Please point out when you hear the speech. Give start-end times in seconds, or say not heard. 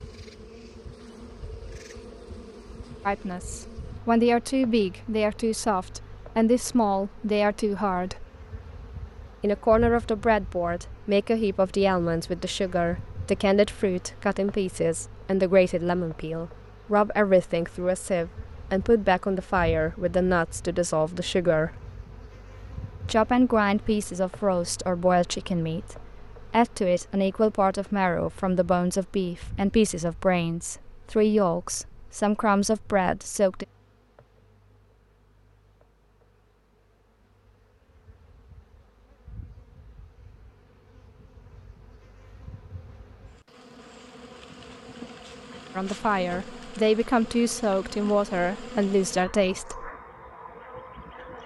3.0-8.2, 9.4-21.8, 23.1-33.6, 45.8-49.9.